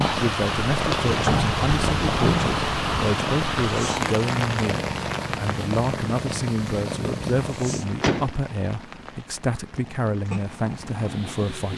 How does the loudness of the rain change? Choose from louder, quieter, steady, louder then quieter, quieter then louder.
quieter.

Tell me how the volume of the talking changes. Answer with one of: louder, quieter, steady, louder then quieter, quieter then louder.
steady.